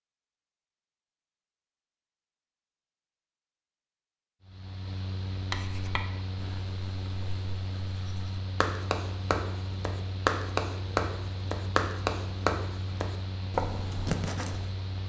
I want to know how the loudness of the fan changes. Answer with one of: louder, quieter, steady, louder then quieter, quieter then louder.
steady.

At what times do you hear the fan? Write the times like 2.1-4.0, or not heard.
4.4-15.0.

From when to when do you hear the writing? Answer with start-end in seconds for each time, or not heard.
5.4-14.7.